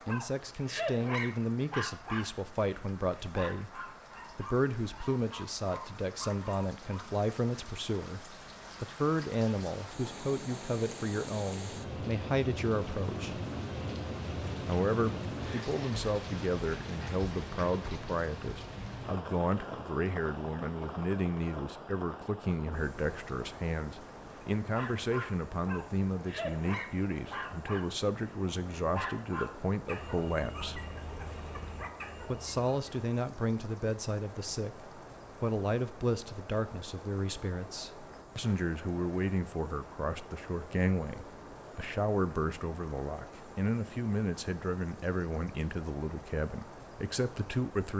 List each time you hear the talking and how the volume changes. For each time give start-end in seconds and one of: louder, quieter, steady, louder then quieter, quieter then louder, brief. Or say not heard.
0.1-13.4 steady
14.7-30.9 steady
32.2-47.9 steady.